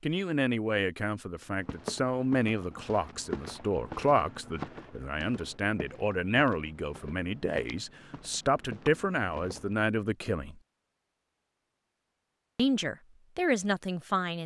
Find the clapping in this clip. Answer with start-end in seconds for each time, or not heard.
not heard.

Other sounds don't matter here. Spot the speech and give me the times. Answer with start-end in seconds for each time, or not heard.
0.0-10.6, 12.6-14.4.